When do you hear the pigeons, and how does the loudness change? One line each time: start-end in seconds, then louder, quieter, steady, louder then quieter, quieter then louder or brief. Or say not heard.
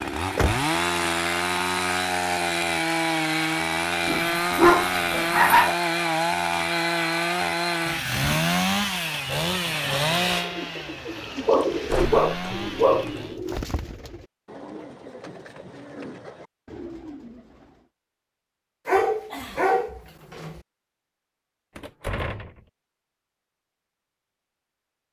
10.3-17.9 quieter.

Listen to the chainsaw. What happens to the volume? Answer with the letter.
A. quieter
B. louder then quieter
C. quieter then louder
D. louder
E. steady
A.